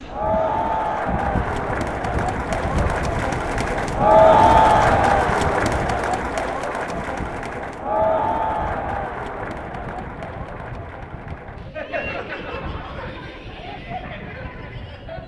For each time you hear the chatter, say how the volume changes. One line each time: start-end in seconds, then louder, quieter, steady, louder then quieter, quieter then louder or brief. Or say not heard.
0.0-15.2 louder then quieter.